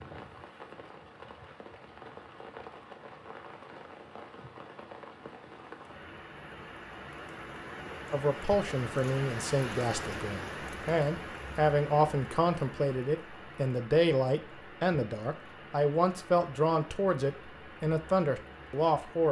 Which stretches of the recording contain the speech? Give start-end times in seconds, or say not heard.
8.1-19.2.